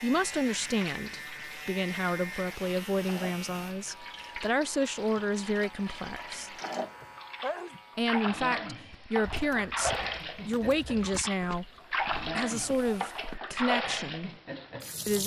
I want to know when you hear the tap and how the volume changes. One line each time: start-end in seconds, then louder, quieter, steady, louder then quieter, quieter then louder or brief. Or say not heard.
0.1-15.2 louder.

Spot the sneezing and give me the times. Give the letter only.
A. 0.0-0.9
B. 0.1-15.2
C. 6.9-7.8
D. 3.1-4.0
C.